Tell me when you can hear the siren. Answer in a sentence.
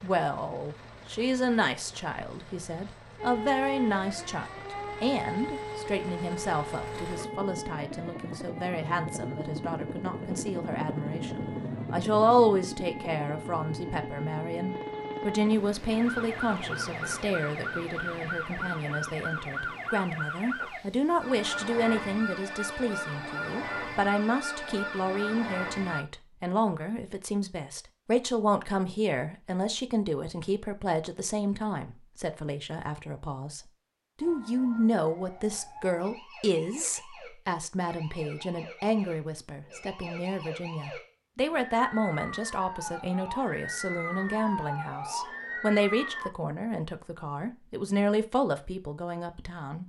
The siren can be heard from 3.1 to 26.1 s and from 34.2 to 46.3 s.